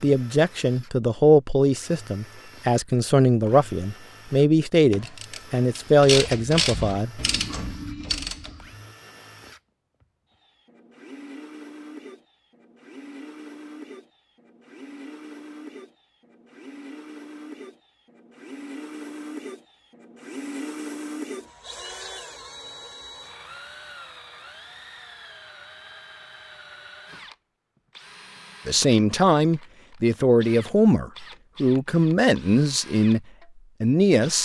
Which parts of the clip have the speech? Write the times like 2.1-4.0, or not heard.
0.0-7.2, 28.6-33.2, 33.8-34.4.